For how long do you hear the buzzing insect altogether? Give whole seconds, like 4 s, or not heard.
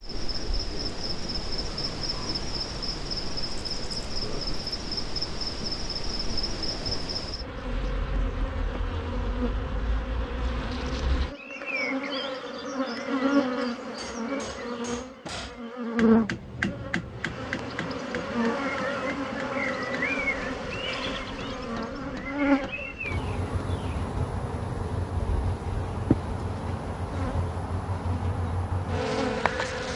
30 s.